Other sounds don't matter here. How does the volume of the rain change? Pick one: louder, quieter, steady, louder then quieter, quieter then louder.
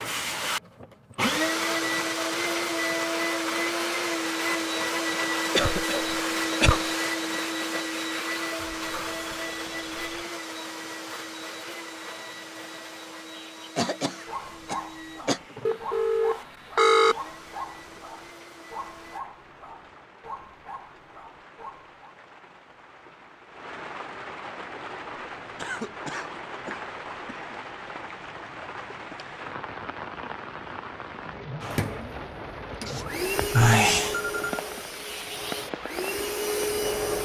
louder.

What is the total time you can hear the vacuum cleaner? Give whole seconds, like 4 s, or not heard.
25 s.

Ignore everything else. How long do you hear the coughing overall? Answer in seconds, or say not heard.
5 s.